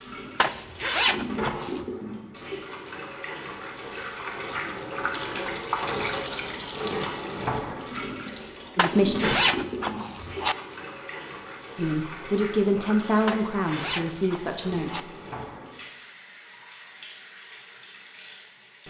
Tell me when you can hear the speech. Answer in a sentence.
The speech can be heard from 8.8 to 9.3 s and from 11.8 to 15.1 s.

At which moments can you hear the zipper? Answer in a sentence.
The zipper can be heard from 0.4 to 1.9 s, from 8.8 to 10.6 s and from 13.2 to 15.0 s.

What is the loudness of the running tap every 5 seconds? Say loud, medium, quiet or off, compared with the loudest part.
medium, loud, medium, quiet.